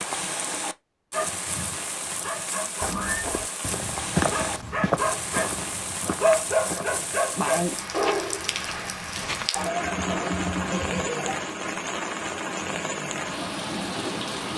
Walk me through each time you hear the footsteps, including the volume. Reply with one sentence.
You can hear the footsteps from 2.8 to 9.5 s, getting quieter.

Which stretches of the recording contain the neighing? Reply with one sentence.
You can hear the neighing from 2.5 to 3.2 s and from 9.6 to 11.4 s.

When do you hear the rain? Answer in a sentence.
You can hear the rain from 0.0 to 14.5 s.